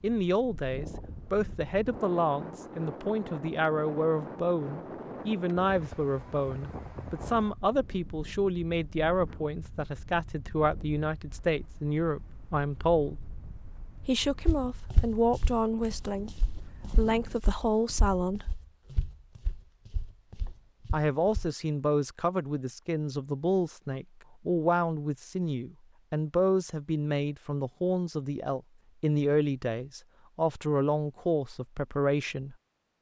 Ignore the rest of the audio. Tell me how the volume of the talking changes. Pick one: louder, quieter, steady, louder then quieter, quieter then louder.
steady.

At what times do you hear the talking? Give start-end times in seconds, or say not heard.
0.0-13.2, 13.9-18.6, 20.9-32.5.